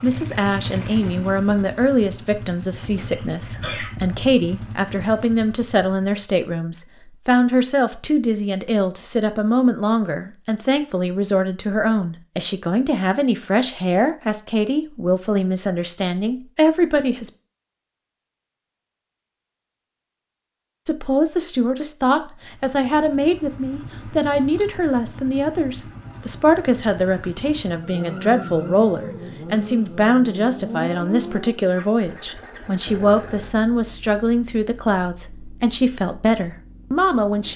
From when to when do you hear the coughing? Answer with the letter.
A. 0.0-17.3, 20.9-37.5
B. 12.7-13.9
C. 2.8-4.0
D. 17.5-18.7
C.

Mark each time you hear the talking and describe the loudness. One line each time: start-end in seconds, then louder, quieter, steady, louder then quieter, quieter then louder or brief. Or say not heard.
0.0-17.3 steady
20.9-37.5 steady.